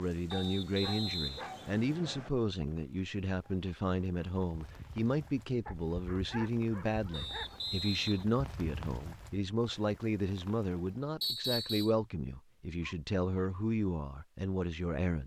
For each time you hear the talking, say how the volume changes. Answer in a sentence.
You can hear the talking from 0.0 to 15.2 s, at a steady volume.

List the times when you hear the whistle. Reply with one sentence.
You can hear the whistle from 0.3 to 2.3 s, from 7.1 to 8.2 s and from 11.2 to 11.9 s.